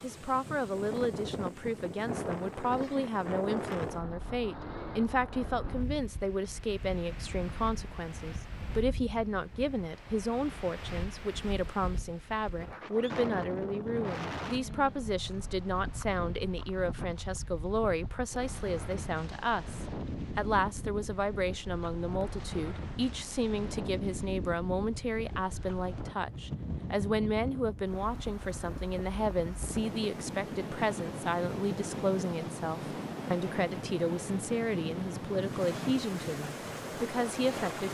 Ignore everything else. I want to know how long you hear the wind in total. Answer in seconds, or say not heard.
38 s.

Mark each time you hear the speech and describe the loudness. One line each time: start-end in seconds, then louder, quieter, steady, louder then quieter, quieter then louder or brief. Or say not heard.
0.0-37.8 steady.